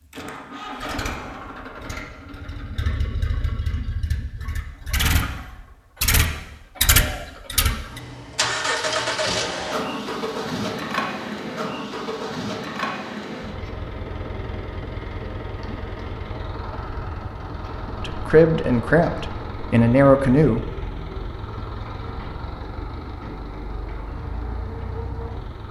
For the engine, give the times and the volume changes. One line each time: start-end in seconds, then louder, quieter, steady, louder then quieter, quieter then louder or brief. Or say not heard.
0.0-25.6 louder then quieter.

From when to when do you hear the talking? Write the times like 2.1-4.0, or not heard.
18.0-20.6.